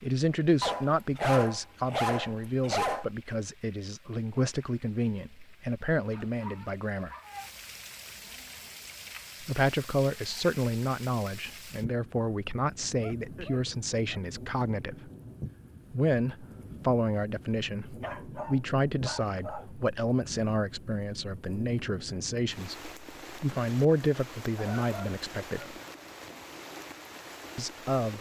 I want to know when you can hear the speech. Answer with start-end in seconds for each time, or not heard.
0.0-7.2, 9.4-15.1, 15.9-25.8, 27.6-28.1.